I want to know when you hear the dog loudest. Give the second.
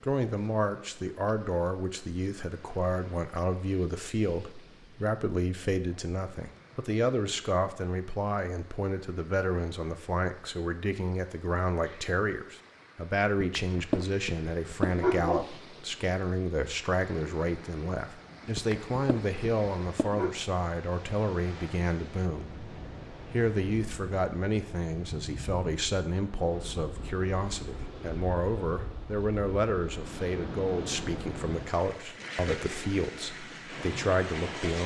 15 s.